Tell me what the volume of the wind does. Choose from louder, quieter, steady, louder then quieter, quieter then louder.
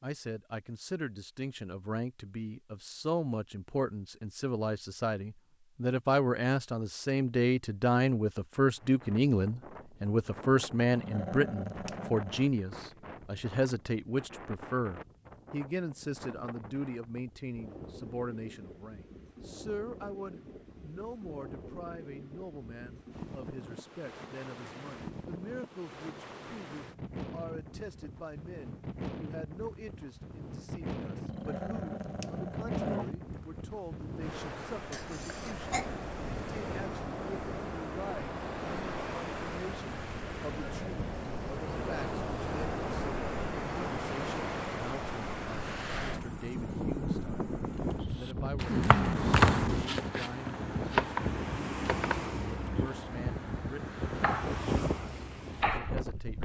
louder.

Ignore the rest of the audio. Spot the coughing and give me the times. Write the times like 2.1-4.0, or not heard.
34.9-35.9.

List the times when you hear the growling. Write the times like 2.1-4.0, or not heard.
10.9-12.4, 31.2-33.1, 48.6-49.9.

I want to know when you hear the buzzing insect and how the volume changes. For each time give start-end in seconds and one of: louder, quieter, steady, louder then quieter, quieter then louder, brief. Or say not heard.
not heard.